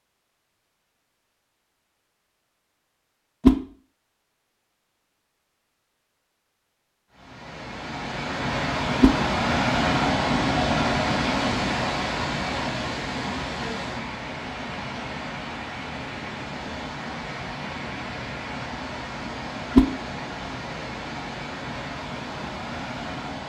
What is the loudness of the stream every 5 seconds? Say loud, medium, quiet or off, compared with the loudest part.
off, loud, loud, medium, medium.